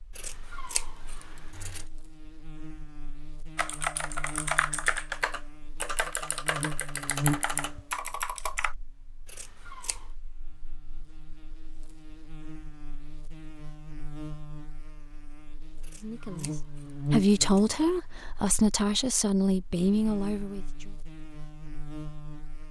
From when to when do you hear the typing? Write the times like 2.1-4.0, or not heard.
3.5-8.8.